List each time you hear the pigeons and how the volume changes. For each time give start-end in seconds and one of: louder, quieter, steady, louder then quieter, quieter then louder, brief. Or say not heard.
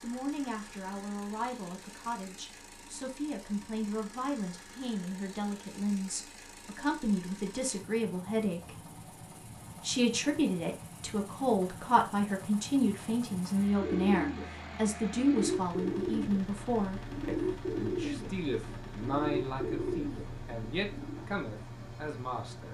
13.8-21.2 steady.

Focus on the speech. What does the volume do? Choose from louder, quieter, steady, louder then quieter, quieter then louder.
louder then quieter.